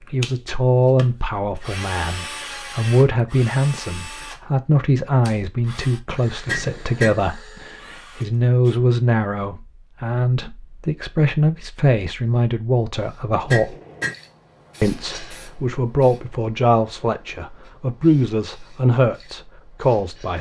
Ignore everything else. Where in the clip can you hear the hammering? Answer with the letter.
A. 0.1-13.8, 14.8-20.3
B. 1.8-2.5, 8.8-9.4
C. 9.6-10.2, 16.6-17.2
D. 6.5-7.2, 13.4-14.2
D.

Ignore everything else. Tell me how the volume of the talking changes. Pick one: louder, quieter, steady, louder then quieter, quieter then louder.
steady.